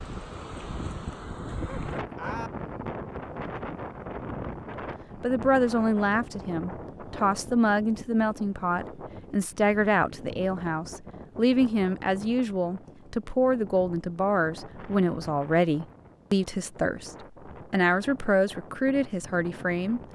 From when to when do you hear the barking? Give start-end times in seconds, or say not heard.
1.5-2.5.